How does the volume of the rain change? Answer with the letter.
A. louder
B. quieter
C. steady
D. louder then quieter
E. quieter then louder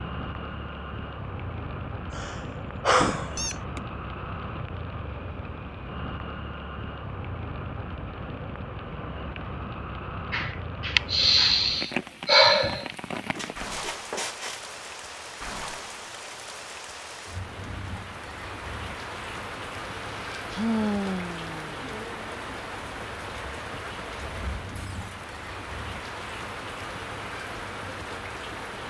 C.